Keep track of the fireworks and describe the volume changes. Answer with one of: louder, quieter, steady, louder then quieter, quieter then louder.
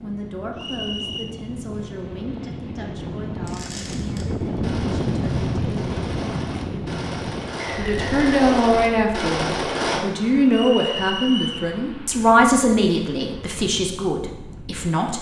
louder.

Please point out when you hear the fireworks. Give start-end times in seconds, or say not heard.
3.5-10.0.